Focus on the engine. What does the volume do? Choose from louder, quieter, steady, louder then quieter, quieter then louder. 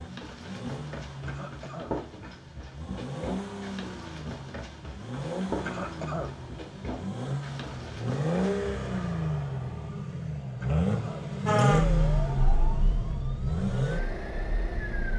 louder.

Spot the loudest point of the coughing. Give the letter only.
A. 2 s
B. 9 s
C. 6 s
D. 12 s
C.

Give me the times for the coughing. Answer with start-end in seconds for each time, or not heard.
1.2-1.9, 5.7-6.3, 10.6-11.2.